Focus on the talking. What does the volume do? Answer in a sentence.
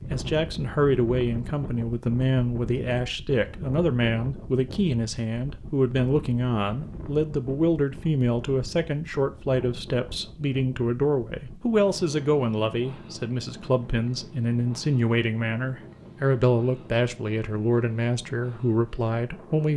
The loudness of the talking stays about the same.